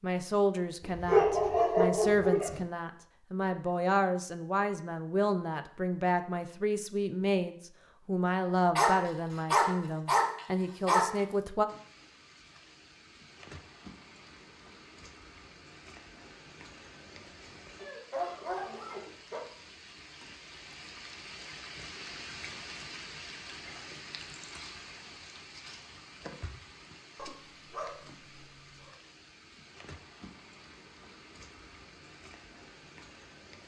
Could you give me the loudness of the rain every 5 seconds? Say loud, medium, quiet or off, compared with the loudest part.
off, off, medium, medium, loud, medium, medium.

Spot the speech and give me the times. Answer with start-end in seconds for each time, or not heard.
0.0-11.7.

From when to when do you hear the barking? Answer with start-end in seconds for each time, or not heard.
0.8-2.6, 8.8-11.1, 17.8-19.4, 27.1-28.9.